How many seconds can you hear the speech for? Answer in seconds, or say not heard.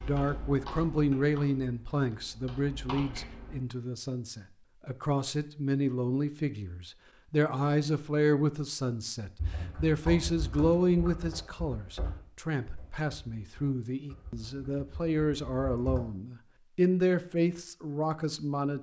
19 s.